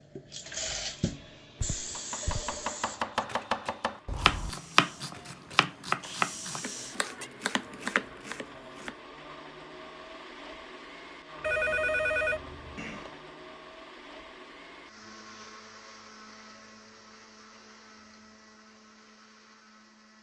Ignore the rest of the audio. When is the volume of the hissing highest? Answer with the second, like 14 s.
1 s.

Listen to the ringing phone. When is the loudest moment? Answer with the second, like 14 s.
12 s.